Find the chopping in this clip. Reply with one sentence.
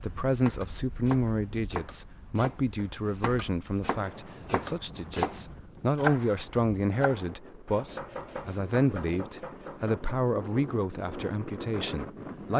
The chopping can be heard from 0.3 to 10.1 s.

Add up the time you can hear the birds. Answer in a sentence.
You can't hear the birds here.